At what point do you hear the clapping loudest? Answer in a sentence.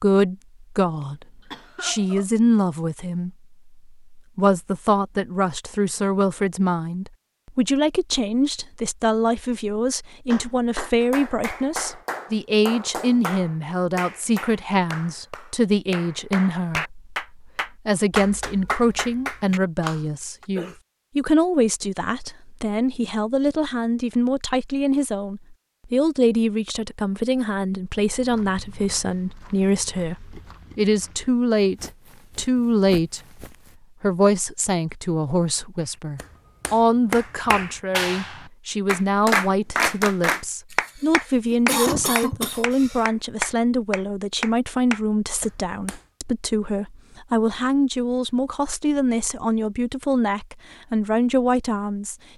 The volume of the clapping peaks at 39 seconds.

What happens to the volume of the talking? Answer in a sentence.
The loudness of the talking stays about the same.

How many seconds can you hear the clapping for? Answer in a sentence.
You can hear the clapping for 20 seconds altogether.